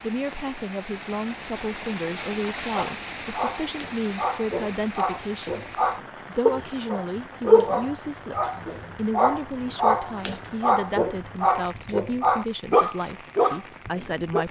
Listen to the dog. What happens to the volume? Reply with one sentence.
The loudness of the dog goes up.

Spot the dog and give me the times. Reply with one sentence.
You can hear the dog from 2.7 to 14.4 s.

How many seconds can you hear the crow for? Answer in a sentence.
You can't hear the crow here.